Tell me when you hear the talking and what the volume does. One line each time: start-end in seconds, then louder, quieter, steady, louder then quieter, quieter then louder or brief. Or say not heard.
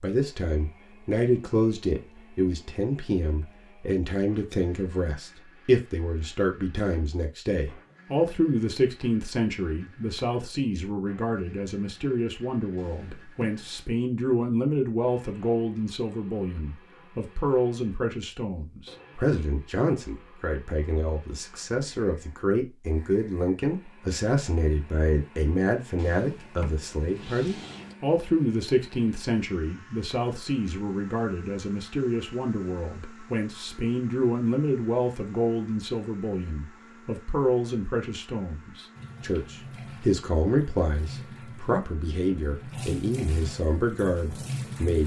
0.0-45.0 steady.